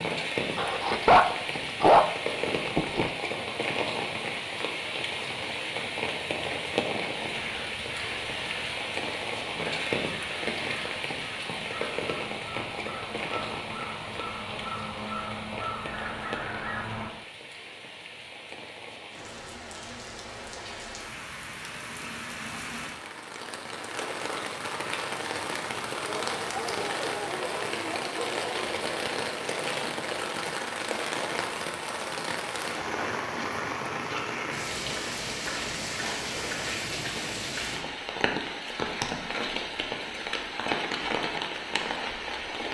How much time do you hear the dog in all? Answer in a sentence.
The dog can be heard for 5 seconds in total.